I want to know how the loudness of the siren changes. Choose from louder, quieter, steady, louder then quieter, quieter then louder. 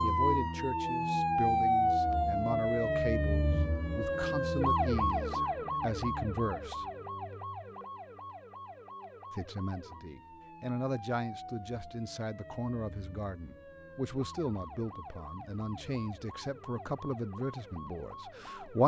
quieter.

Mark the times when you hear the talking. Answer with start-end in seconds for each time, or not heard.
0.0-6.8, 9.3-18.8.